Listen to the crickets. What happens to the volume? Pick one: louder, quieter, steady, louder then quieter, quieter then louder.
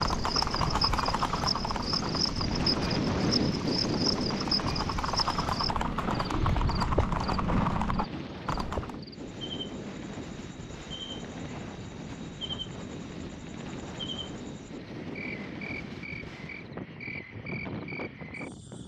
quieter.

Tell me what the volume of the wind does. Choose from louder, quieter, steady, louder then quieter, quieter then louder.
quieter.